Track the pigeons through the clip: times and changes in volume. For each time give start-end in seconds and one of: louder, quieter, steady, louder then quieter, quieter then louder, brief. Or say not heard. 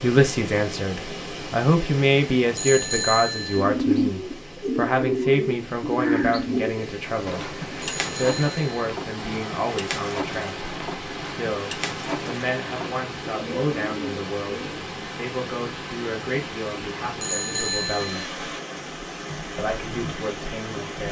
3.5-14.8 quieter.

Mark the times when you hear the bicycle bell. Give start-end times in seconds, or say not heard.
2.5-3.6, 7.8-8.8, 17.2-18.2.